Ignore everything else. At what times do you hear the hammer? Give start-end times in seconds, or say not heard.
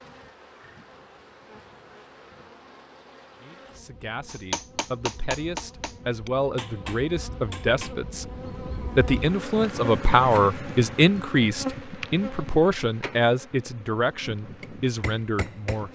4.2-8.0, 14.6-15.9.